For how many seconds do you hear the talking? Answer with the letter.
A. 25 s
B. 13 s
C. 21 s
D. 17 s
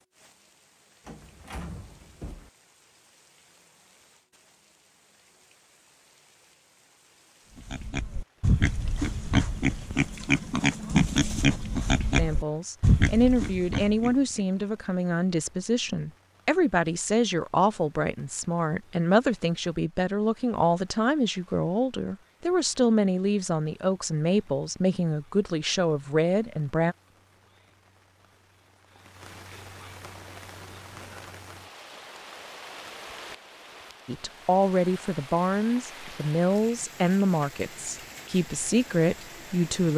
C.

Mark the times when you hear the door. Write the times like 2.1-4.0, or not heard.
1.1-2.5.